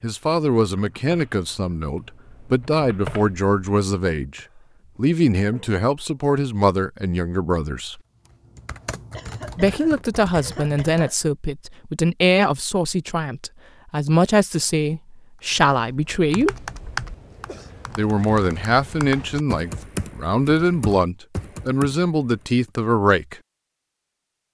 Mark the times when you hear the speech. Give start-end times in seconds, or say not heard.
0.0-8.0, 9.6-16.6, 17.9-23.4.